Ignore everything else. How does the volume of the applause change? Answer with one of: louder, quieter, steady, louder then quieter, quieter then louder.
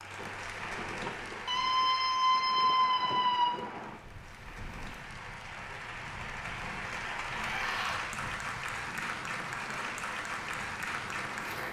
quieter then louder.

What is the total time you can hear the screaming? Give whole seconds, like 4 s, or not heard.
3 s.